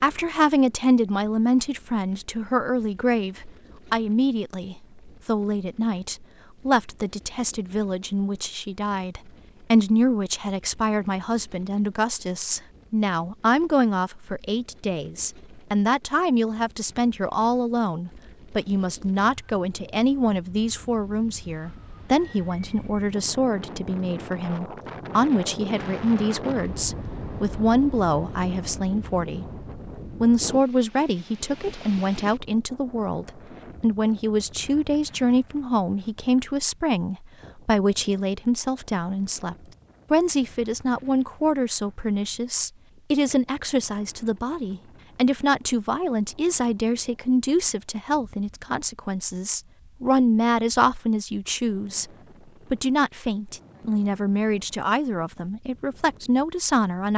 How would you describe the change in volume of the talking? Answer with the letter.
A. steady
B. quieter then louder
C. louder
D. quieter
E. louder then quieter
A.